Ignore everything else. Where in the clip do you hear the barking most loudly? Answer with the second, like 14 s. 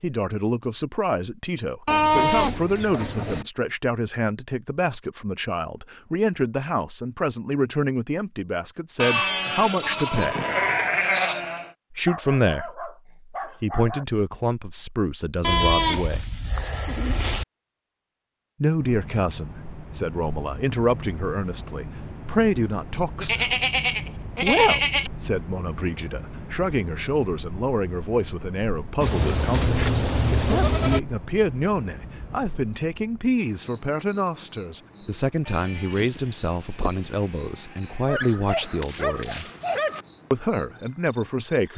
40 s.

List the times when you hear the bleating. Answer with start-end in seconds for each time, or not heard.
1.9-3.5, 8.9-11.7, 15.4-17.4, 23.2-25.1, 29.0-31.0, 35.5-38.0.